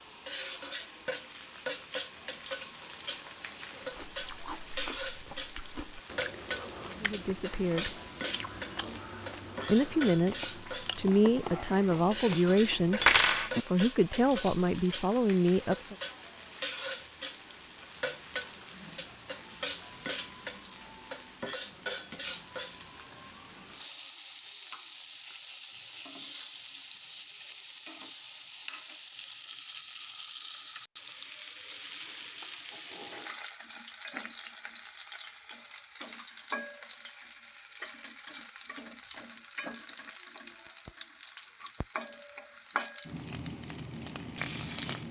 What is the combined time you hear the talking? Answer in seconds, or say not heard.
7 s.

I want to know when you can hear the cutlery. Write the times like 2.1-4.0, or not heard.
13.0-13.5.